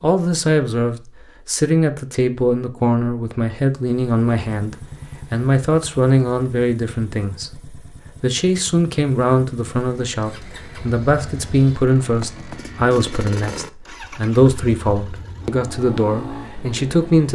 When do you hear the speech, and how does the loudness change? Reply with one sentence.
You can hear the speech from 0.0 to 17.3 s, at a steady volume.